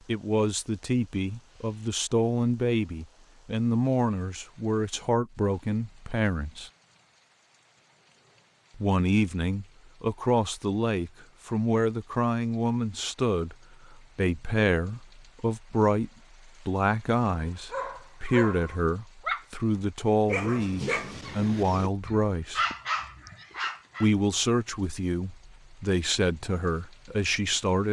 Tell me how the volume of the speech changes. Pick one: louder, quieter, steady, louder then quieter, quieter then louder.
steady.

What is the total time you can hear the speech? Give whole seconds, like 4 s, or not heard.
24 s.